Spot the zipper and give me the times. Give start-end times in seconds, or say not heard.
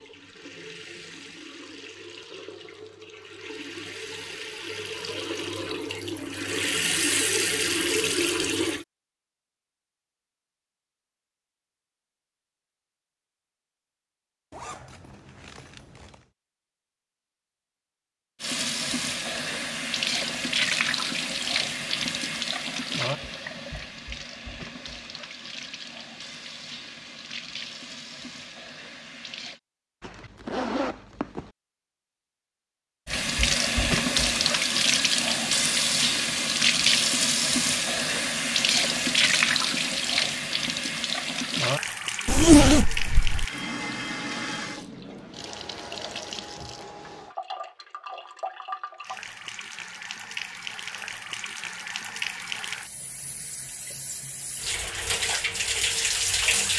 14.5-16.2, 30.0-31.5, 42.2-43.5.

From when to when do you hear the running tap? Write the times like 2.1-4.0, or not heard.
0.0-8.8, 18.4-29.6, 33.0-56.7.